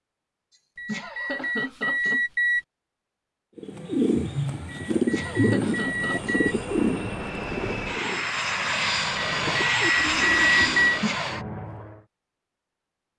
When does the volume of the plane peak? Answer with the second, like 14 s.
10 s.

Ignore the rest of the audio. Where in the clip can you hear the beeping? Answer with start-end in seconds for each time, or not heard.
0.8-2.6, 4.7-6.5, 9.2-11.0.